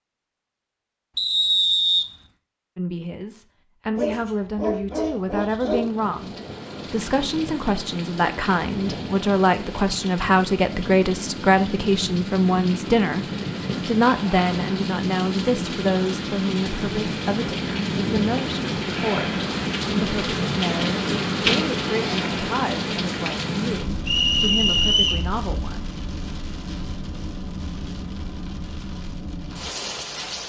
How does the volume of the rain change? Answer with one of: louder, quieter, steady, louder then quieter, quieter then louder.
louder then quieter.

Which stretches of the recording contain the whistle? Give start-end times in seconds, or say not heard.
1.1-2.1, 24.1-25.2.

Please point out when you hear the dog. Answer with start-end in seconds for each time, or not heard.
4.0-5.8.